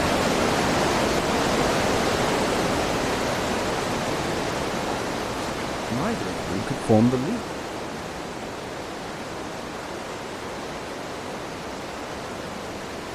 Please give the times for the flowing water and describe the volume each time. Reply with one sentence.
The flowing water can be heard from 0.0 to 13.0 s, getting quieter.